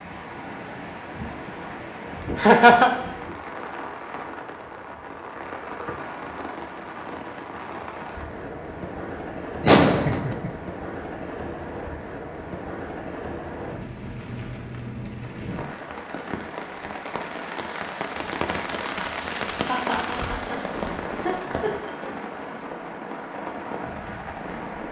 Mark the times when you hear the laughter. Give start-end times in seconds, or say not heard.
2.4-2.9, 9.6-10.5, 19.6-20.6, 21.2-22.1.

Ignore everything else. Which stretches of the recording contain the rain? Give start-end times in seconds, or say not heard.
0.0-24.8.